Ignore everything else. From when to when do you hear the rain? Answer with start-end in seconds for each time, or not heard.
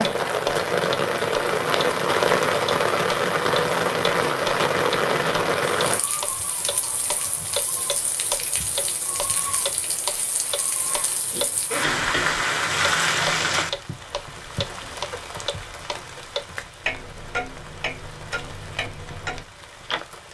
0.0-20.2.